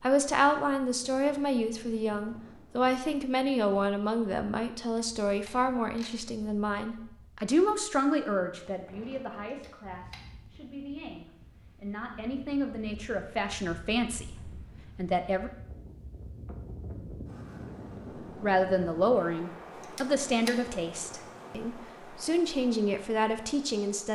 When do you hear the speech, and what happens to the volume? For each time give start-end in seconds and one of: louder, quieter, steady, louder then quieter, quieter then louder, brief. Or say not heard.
0.0-15.5 quieter then louder
18.4-24.1 quieter then louder.